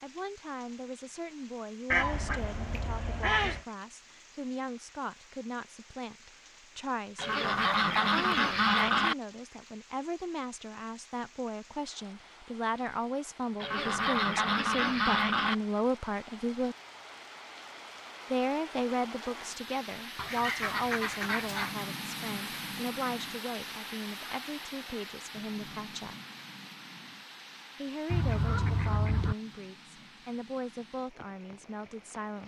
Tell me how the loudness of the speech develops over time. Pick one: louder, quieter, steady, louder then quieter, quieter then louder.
louder then quieter.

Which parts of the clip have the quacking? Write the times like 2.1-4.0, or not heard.
1.9-3.6, 7.2-9.2, 13.6-15.6, 20.1-21.9, 28.1-29.4.